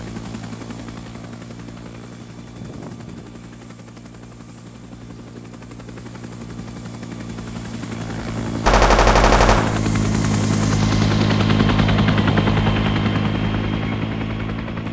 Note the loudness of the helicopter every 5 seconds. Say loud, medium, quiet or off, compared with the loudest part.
quiet, medium, loud.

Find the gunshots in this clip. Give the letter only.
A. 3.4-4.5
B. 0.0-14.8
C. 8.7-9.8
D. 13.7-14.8
C.